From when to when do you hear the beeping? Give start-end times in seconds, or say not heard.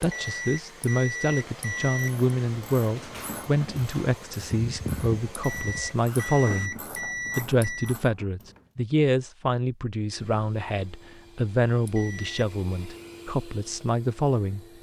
0.0-2.1, 5.3-8.0, 11.8-12.4.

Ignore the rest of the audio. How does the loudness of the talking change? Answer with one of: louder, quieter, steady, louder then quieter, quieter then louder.
steady.